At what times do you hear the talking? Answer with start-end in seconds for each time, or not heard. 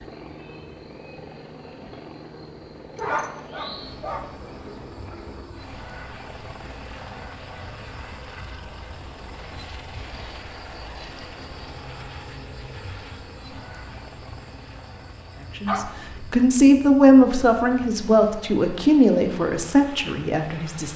15.6-20.9.